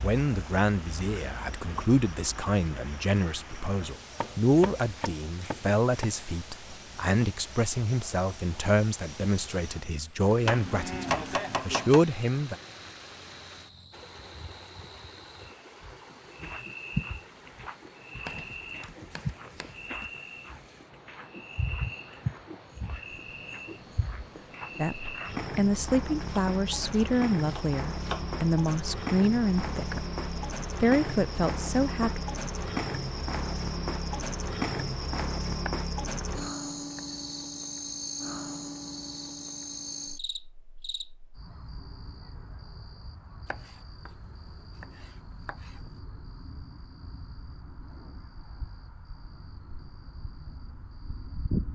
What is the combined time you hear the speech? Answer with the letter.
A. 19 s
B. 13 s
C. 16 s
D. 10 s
A.